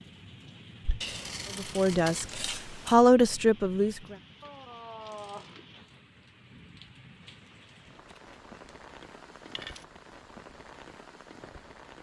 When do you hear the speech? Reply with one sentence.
The speech can be heard from 1.6 to 4.2 s.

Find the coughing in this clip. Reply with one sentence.
You can't hear the coughing here.